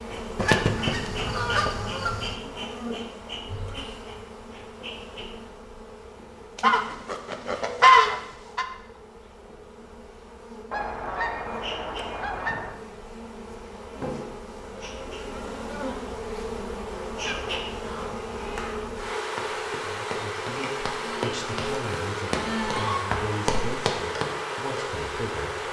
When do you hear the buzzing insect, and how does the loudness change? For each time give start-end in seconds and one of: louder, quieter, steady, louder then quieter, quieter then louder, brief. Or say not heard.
0.0-25.6 quieter then louder.